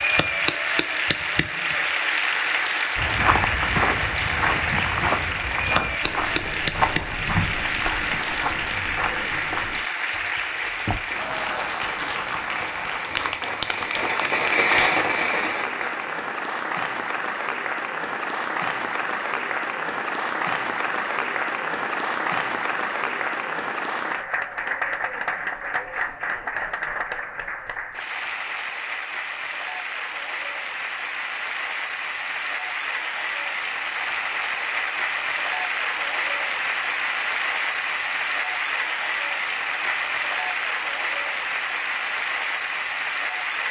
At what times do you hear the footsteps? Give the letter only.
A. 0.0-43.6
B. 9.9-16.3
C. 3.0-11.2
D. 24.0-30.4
C.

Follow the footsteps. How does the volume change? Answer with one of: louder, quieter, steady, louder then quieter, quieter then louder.
quieter.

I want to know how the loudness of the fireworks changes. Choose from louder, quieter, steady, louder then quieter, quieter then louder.
louder.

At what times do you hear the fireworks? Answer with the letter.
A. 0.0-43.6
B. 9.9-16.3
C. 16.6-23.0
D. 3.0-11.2
B.